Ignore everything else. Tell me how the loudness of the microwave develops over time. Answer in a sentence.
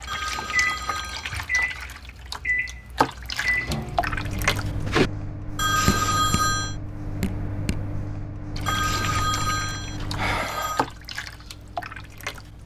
The loudness of the microwave goes down.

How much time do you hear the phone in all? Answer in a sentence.
The phone can be heard for 5 seconds in total.